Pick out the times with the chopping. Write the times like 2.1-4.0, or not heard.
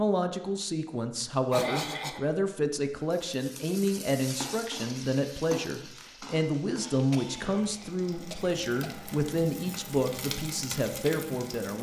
not heard.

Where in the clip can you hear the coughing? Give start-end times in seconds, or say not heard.
1.5-2.2, 6.8-8.9.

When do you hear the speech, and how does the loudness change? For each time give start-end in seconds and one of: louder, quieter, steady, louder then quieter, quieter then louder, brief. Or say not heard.
0.0-11.7 steady.